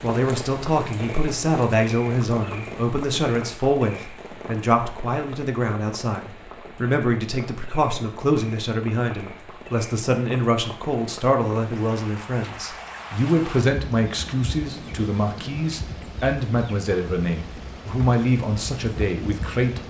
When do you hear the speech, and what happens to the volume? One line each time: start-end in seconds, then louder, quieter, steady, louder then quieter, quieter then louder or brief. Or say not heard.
0.0-19.8 steady.